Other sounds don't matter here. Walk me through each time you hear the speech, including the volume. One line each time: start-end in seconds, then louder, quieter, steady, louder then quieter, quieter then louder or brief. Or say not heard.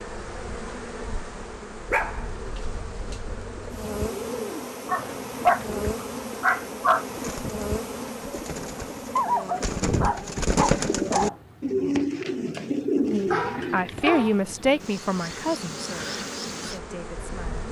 13.1-17.6 quieter.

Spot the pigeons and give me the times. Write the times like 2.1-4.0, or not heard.
2.4-13.9.